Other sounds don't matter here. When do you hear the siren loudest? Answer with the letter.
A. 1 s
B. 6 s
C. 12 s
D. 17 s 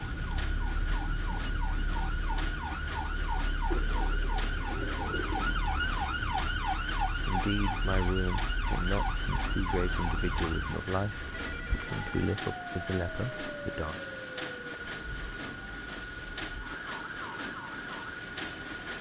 B.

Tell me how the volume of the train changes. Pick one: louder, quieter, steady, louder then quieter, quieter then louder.
steady.